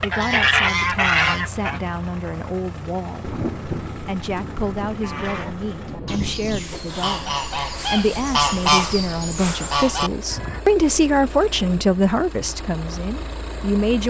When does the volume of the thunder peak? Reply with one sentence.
The volume of the thunder peaks at 4 seconds.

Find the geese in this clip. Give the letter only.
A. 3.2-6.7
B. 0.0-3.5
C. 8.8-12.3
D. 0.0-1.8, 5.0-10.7
D.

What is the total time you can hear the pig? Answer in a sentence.
You can't hear the pig here.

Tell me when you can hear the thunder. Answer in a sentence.
You can hear the thunder from 3.2 to 6.7 s.